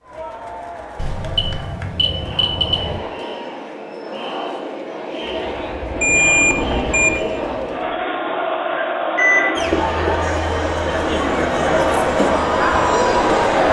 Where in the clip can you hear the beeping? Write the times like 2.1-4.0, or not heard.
0.9-3.0, 6.0-7.1, 9.2-10.2.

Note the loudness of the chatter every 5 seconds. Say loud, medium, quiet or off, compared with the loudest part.
quiet, medium, loud.